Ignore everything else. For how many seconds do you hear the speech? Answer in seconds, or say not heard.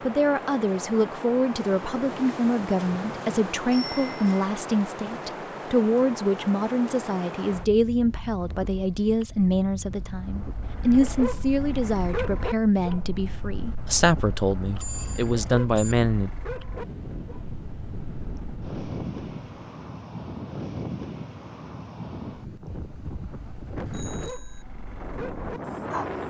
16 s.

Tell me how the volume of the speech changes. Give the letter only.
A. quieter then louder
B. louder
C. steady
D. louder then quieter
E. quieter
C.